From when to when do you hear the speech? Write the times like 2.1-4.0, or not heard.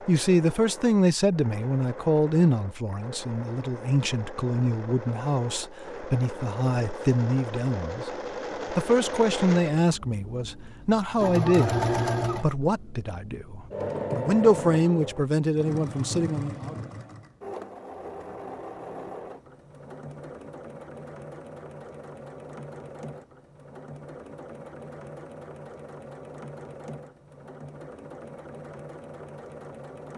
0.1-8.1, 8.7-16.8.